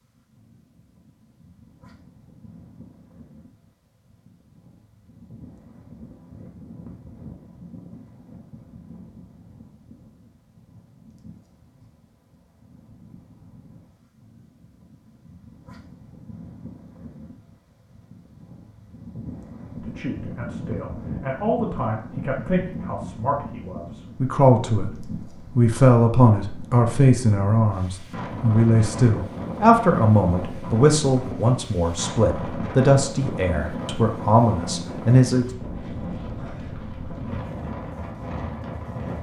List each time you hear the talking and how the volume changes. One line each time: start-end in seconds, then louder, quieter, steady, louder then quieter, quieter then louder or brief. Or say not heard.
19.8-35.5 louder.